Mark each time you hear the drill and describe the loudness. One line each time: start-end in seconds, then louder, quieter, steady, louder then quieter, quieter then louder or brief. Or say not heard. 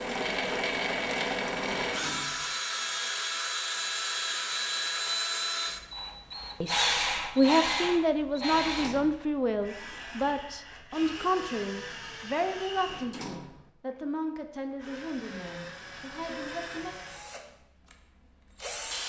0.0-19.0 quieter.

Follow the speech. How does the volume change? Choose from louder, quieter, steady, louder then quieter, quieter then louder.
quieter.